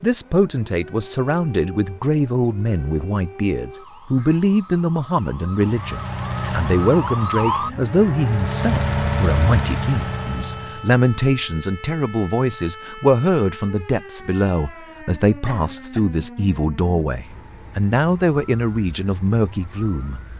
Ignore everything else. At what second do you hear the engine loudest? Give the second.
9 s.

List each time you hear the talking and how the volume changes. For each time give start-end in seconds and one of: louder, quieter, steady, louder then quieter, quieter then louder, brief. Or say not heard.
0.0-20.2 steady.